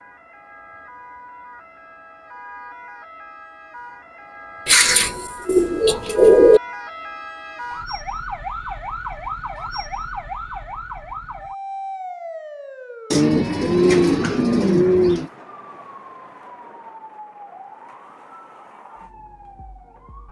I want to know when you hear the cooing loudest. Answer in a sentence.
The volume of the cooing peaks at 6 seconds.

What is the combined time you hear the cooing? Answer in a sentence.
The cooing can be heard for 4 seconds in total.